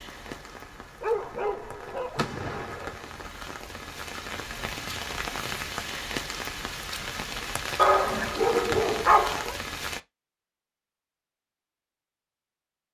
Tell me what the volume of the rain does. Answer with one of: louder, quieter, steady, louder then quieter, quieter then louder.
louder.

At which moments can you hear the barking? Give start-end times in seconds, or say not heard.
1.0-3.0, 7.8-9.6.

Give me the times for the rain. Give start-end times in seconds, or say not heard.
0.0-10.0.